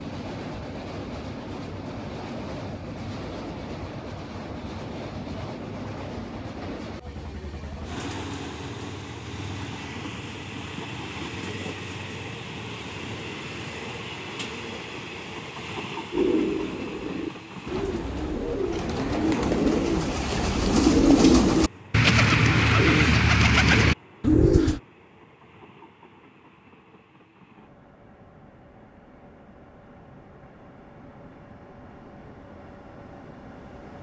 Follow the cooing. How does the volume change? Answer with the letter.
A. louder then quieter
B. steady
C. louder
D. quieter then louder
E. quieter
C.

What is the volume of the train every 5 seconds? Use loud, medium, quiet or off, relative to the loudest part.
loud, loud, loud, loud, quiet, quiet, medium.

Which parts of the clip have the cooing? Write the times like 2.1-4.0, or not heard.
16.1-24.8.